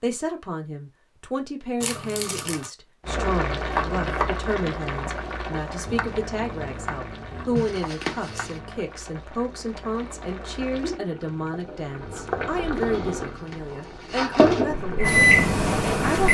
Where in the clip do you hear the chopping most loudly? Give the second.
4 s.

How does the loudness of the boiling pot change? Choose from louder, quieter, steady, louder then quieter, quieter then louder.
quieter then louder.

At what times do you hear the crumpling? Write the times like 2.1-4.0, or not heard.
1.8-2.7, 7.5-8.6, 13.2-14.7.